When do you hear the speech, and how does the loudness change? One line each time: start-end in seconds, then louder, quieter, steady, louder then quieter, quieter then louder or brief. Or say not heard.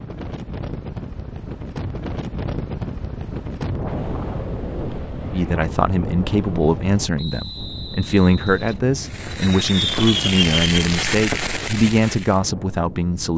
5.3-13.3 steady.